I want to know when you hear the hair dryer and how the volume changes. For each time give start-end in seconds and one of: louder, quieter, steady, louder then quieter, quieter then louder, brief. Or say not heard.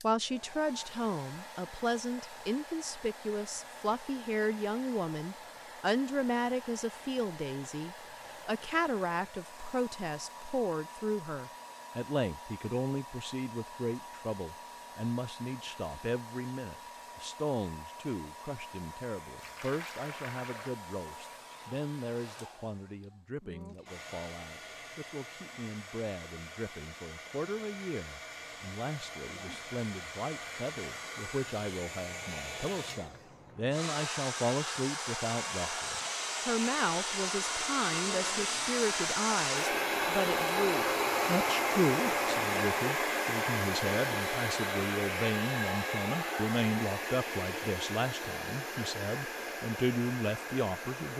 0.0-51.1 louder.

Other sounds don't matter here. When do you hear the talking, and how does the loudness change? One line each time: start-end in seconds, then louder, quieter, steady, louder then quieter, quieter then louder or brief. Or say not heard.
0.0-51.1 quieter then louder.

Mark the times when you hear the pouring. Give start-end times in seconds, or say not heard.
19.4-20.8.